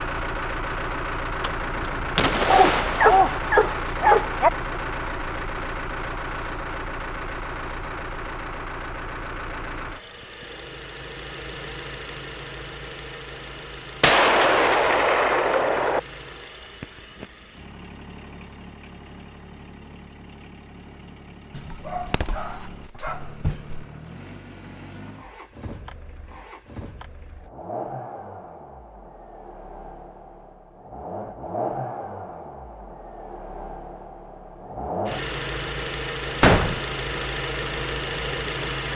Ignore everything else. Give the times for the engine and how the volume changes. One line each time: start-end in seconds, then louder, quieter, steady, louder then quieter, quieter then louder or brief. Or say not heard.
0.0-38.9 quieter then louder.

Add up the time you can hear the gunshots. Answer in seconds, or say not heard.
4 s.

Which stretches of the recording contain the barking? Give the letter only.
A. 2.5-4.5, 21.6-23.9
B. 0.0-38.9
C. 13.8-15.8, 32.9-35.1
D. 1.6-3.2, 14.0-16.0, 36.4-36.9
A.